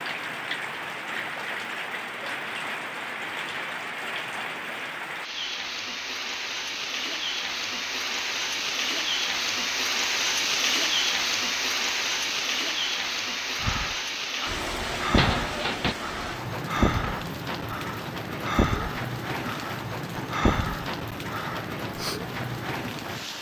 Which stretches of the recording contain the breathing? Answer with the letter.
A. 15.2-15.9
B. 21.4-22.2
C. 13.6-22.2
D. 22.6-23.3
C.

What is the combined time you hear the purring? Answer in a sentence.
The purring can't be heard in this clip.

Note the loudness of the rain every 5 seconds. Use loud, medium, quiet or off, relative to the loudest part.
medium, loud, loud, medium, medium.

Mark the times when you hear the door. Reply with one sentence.
You can hear the door from 15.2 to 15.9 s.